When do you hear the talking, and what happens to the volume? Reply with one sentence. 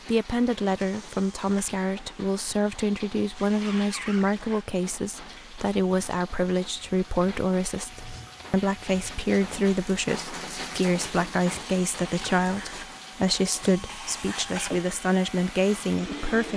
The talking can be heard from 0.1 to 16.5 s, at a steady volume.